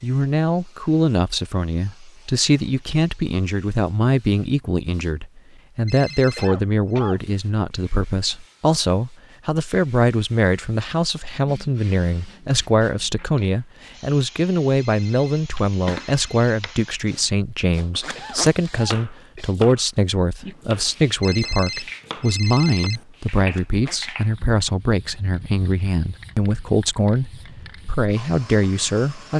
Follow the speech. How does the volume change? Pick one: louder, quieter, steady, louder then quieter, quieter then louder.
steady.